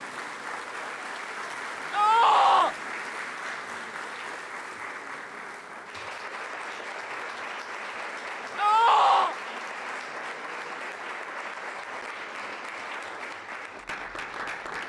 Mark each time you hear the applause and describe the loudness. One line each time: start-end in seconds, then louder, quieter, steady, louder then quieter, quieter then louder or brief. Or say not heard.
0.0-14.8 steady.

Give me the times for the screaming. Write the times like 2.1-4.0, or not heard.
1.9-2.8, 8.6-9.3.